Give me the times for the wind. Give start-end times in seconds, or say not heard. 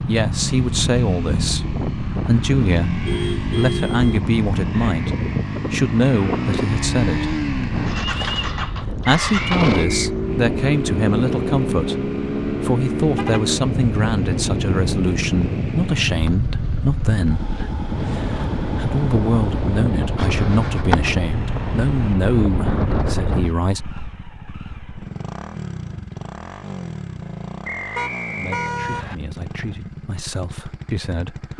0.0-23.6.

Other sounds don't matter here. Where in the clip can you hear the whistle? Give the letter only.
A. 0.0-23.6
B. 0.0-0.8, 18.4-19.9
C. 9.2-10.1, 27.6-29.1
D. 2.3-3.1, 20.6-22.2
C.